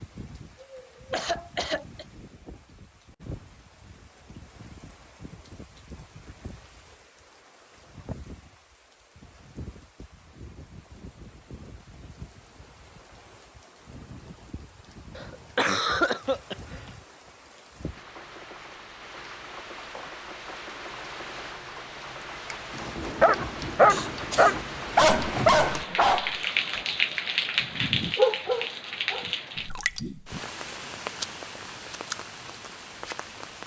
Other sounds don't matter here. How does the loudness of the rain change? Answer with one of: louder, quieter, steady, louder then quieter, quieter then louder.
louder.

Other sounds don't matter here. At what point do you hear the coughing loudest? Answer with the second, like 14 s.
16 s.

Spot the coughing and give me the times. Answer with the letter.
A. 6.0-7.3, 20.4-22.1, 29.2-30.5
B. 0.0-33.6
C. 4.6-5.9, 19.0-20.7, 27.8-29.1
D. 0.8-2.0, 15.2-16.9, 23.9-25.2
D.